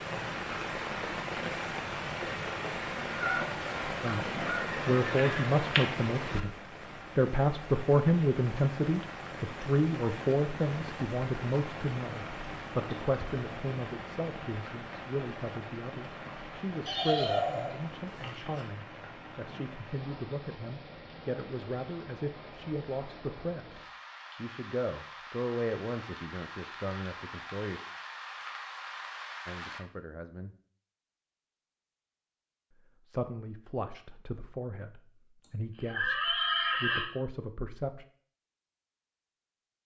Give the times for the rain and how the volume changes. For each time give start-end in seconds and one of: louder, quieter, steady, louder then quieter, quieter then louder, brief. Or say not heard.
0.0-29.8 quieter.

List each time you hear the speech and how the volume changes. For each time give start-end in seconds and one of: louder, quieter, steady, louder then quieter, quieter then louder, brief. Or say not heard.
4.0-6.5 brief
7.2-27.8 quieter
29.4-30.5 brief
32.8-38.0 quieter then louder.